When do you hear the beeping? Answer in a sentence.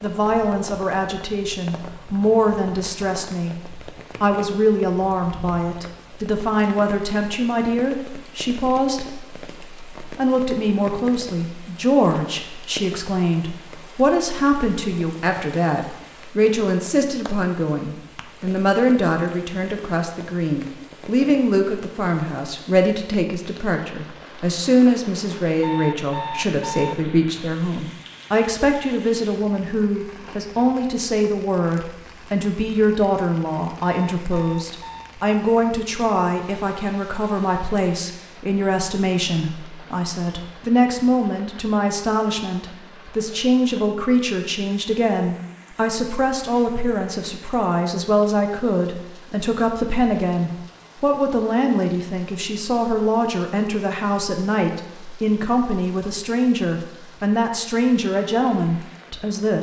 The beeping can be heard from 25.6 to 26.9 s and from 33.8 to 35.1 s.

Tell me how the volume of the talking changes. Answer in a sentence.
The volume of the talking stays about the same.